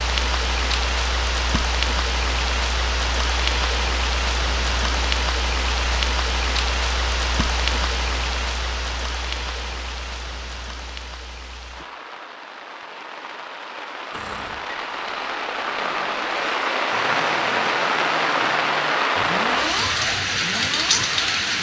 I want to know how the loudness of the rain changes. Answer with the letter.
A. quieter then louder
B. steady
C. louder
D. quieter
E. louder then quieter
A.